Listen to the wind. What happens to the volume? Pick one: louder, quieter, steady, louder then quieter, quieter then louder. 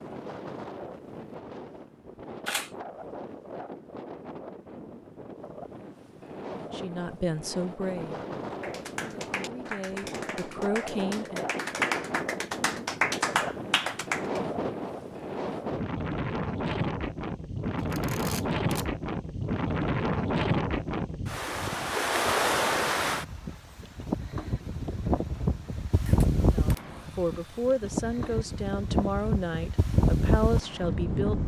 louder.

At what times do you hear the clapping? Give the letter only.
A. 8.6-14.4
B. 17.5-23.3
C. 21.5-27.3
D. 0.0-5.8
A.